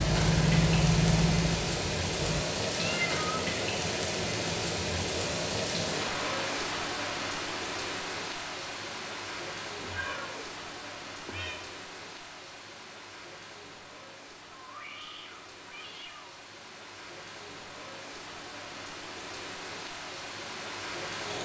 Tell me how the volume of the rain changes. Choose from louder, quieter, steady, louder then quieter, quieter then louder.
quieter then louder.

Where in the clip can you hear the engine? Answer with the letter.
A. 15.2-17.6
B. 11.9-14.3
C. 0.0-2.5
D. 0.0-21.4
C.